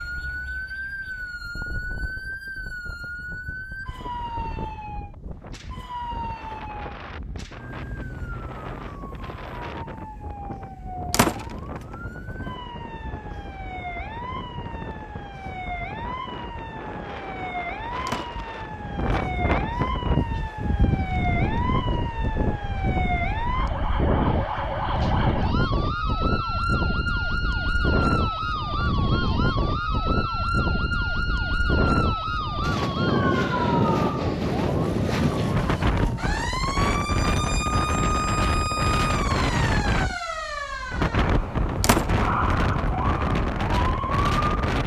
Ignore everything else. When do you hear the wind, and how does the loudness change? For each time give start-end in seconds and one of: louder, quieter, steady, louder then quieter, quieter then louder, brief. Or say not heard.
0.0-44.8 louder.